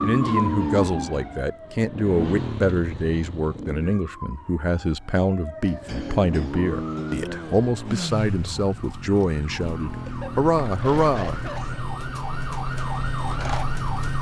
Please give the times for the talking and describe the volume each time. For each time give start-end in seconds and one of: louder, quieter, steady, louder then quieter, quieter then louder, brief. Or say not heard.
0.0-11.4 steady.